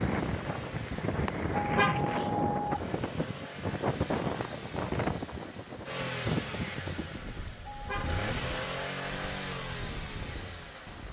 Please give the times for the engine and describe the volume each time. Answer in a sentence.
You can hear the engine from 0.0 to 11.0 s, getting louder.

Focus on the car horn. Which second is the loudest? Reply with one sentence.
The volume of the car horn peaks at 2 seconds.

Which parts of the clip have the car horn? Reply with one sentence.
You can hear the car horn from 1.6 to 2.8 s and from 7.7 to 8.2 s.